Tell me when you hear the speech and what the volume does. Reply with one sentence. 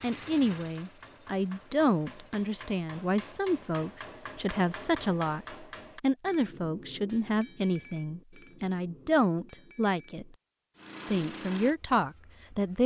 The speech can be heard from 0.0 to 10.2 s, at a steady volume; and briefly from 11.1 to 12.8 s.